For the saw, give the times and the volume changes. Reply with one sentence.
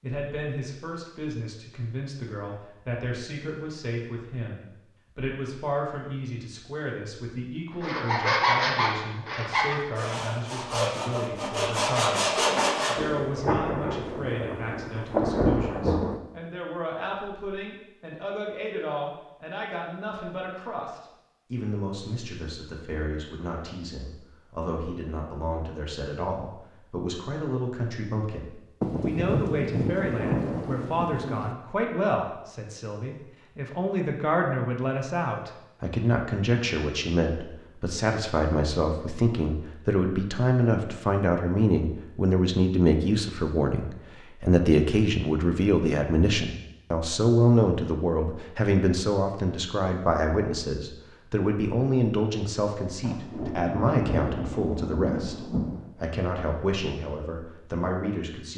The saw can be heard from 7.7 to 12.9 s, getting quieter then louder.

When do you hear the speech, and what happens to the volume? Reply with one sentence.
The speech can be heard from 0.0 to 58.5 s, getting louder.